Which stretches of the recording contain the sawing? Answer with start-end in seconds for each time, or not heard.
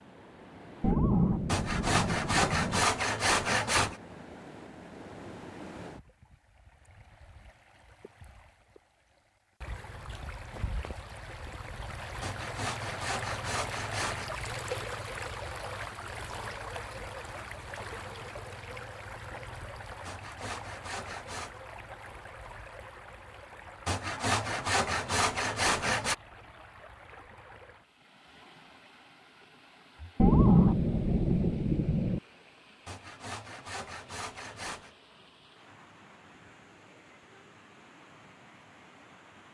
1.4-4.0, 12.2-14.3, 20.1-21.6, 23.9-26.1, 32.9-34.9.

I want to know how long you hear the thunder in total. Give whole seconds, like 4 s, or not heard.
4 s.